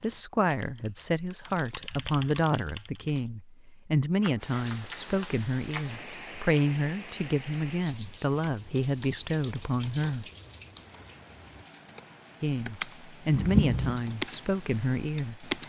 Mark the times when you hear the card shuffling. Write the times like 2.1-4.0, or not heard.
4.2-6.0, 13.3-14.0.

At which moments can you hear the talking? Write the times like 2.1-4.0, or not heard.
0.0-10.2, 12.4-15.5.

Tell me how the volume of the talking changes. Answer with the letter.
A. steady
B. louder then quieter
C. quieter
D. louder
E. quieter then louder
A.